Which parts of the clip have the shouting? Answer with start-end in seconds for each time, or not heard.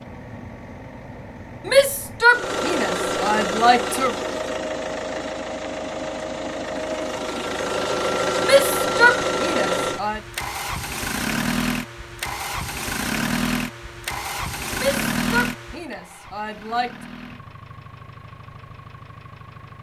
1.6-4.2, 8.4-10.2, 14.8-16.9.